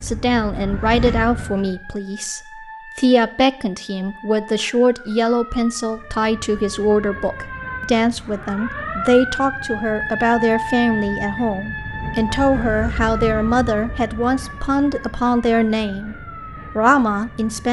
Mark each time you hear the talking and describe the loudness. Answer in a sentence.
You can hear the talking from 0.0 to 16.1 s, at a steady volume; and briefly from 16.8 to 17.6 s.